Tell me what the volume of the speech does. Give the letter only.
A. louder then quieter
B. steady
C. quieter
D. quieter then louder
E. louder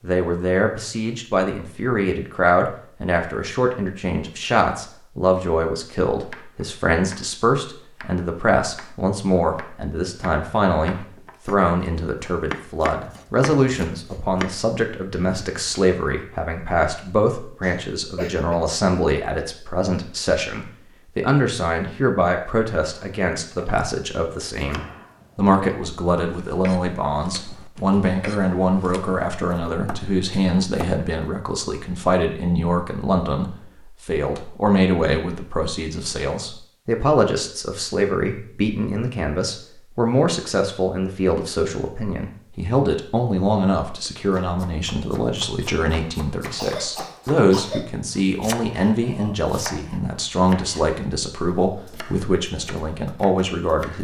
B.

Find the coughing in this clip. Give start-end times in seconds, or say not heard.
17.6-18.6, 46.5-48.0.